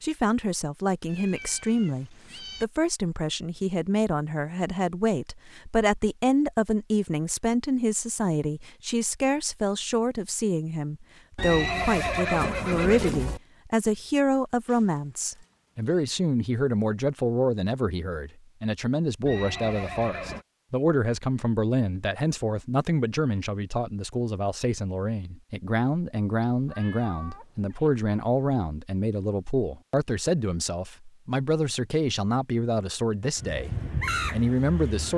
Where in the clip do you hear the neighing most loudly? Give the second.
12 s.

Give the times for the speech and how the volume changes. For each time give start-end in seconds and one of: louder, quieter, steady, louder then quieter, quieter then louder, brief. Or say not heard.
0.0-35.1 steady.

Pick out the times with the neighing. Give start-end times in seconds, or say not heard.
11.3-13.4, 19.2-20.4.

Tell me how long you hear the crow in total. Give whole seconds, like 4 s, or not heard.
2 s.